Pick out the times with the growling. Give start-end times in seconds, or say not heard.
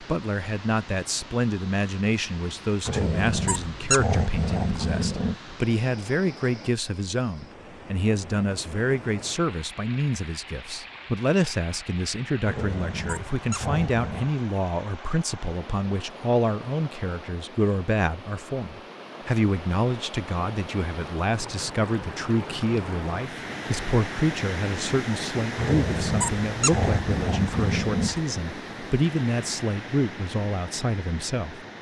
2.9-5.3, 12.4-14.3, 25.6-28.2.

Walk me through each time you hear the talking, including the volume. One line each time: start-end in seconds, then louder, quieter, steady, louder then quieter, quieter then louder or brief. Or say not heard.
0.0-31.6 steady.